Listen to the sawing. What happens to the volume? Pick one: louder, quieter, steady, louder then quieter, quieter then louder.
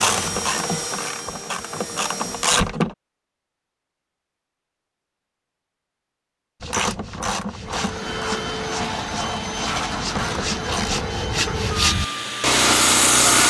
louder.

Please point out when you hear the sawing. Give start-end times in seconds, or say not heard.
6.6-13.4.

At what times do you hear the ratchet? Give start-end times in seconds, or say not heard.
0.0-3.0, 6.6-11.1.